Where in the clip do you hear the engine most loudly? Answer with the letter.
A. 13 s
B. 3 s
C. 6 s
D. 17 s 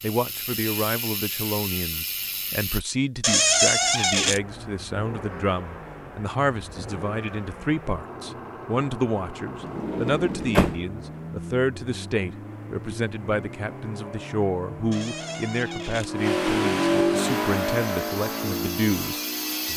D.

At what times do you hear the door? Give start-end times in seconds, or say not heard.
3.2-4.4, 9.6-10.8, 14.9-16.1.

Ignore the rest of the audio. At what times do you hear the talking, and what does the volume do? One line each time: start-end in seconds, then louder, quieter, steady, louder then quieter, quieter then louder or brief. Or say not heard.
0.0-19.7 steady.